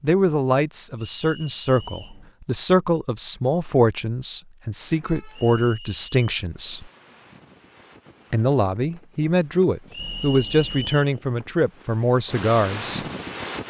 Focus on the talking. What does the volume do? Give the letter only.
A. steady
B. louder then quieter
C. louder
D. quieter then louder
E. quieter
A.